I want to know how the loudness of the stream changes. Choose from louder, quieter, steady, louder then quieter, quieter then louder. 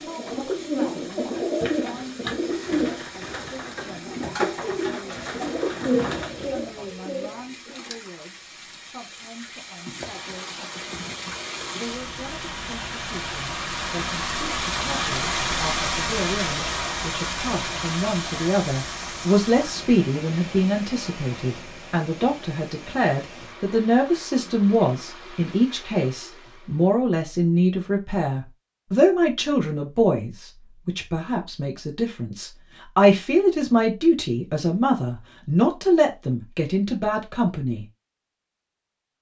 louder then quieter.